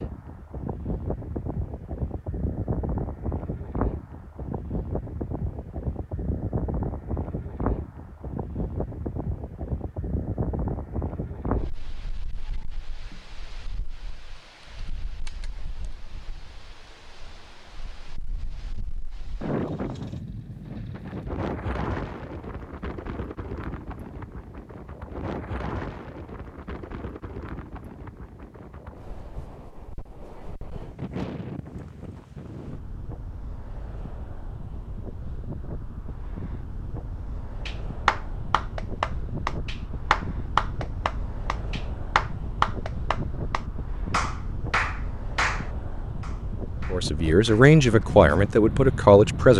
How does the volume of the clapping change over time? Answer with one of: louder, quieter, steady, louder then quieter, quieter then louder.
quieter.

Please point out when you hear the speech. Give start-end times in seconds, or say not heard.
46.9-49.5.